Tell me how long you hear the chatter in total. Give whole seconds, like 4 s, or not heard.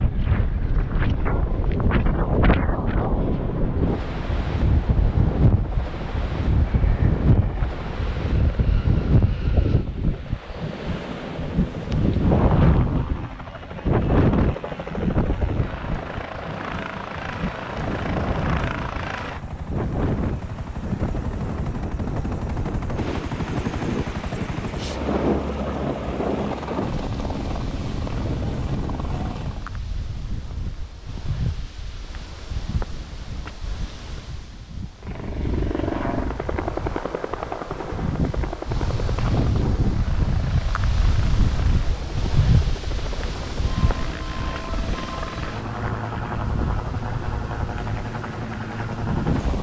not heard.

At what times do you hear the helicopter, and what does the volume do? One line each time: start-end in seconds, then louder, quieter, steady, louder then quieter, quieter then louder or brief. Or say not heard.
0.0-29.8 louder
35.0-49.5 quieter then louder.